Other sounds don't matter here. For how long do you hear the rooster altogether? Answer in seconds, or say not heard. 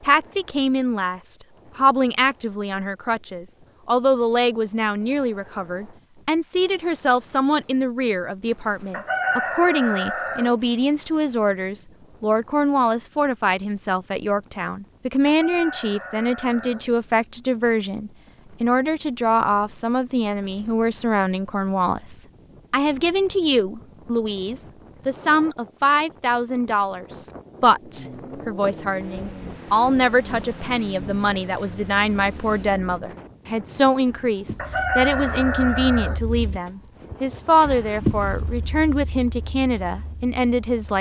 5 s.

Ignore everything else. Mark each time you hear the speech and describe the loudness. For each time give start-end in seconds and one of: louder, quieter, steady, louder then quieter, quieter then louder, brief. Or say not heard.
0.0-40.9 steady.